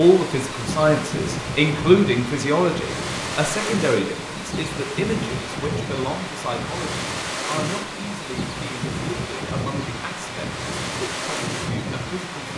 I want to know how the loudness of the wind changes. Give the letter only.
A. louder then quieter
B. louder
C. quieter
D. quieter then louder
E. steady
E.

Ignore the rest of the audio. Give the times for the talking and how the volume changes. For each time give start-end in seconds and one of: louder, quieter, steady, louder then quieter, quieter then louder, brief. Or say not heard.
0.0-12.5 quieter.